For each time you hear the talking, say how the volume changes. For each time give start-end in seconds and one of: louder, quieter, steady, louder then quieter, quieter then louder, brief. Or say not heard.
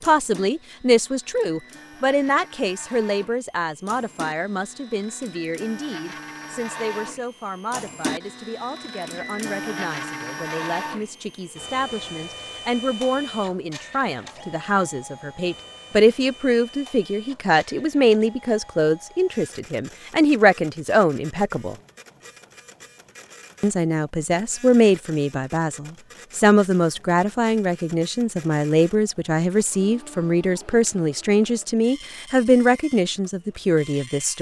0.1-21.8 quieter then louder
23.6-34.3 steady.